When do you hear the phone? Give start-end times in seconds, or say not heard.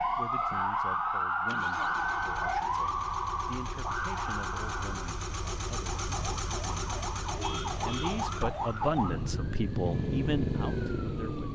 not heard.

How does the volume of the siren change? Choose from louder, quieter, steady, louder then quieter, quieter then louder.
quieter then louder.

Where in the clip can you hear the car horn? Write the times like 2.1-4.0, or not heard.
7.3-8.8.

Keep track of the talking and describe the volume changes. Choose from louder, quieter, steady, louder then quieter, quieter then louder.
louder.